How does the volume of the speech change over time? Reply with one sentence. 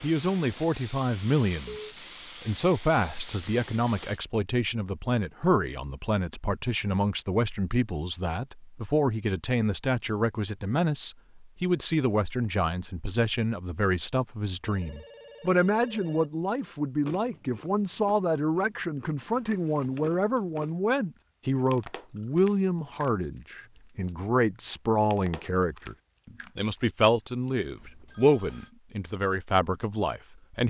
The loudness of the speech stays about the same.